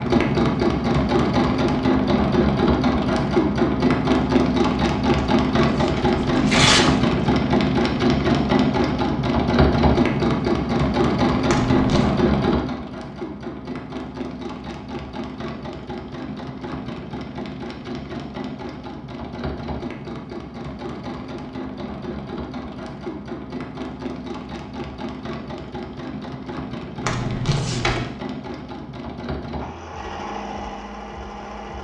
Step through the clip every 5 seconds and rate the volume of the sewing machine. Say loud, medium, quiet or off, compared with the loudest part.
loud, loud, loud, quiet, quiet, quiet, quiet.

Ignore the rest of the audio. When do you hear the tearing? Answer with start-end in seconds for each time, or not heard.
5.2-7.2, 11.4-12.1, 27.0-28.0.